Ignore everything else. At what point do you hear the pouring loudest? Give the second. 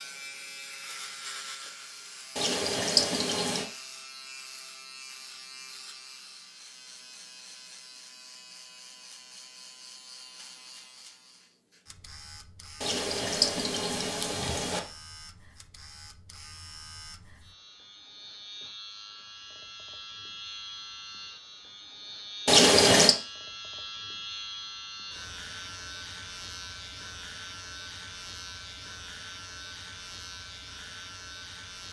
23 s.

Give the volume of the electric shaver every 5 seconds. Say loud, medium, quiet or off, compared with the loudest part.
loud, medium, medium, medium, loud, loud, loud.